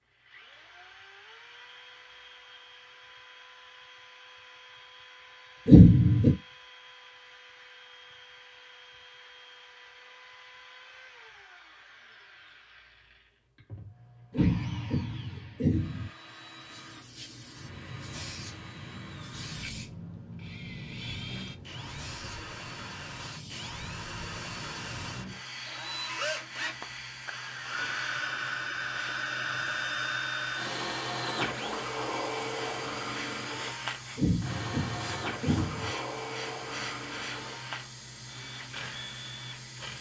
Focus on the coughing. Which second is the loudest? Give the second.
6 s.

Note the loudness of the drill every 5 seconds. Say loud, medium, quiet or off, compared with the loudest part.
quiet, quiet, quiet, quiet, medium, loud, loud, medium.